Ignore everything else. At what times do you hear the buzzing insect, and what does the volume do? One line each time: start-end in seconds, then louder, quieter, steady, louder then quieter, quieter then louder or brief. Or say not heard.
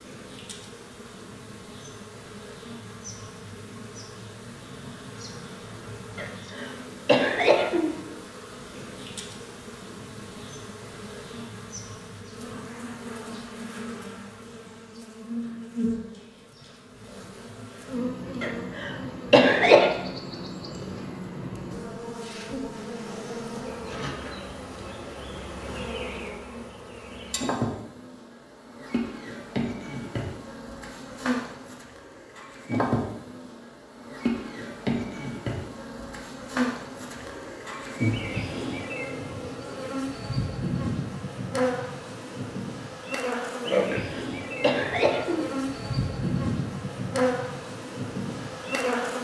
0.0-49.1 louder.